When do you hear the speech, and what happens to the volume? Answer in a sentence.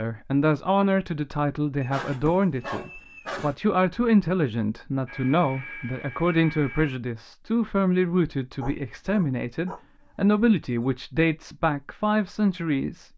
The speech can be heard from 0.0 to 13.1 s, at a steady volume.